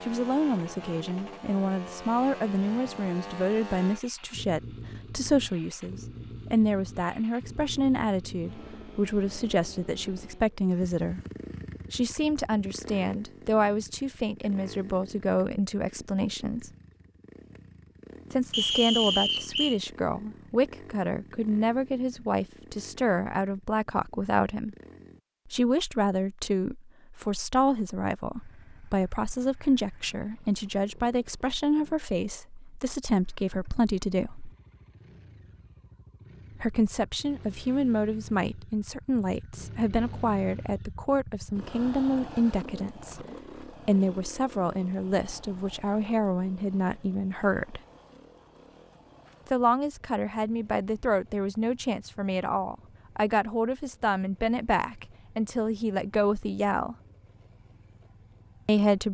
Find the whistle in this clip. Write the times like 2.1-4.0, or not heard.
18.5-19.8.